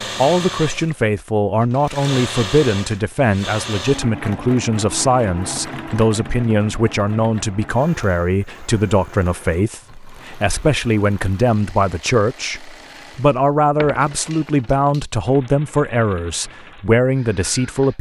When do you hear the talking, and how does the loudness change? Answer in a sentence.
You can hear the talking from 0.1 to 17.9 s, at a steady volume.